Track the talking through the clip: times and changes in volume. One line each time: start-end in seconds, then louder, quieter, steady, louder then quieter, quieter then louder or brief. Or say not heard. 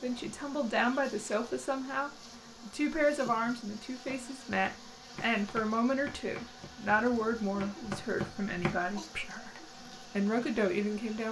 0.0-11.2 steady.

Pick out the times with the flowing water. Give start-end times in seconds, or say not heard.
not heard.